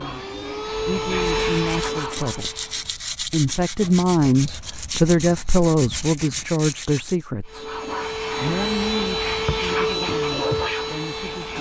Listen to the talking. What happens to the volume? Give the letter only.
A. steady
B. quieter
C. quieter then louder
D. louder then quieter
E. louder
D.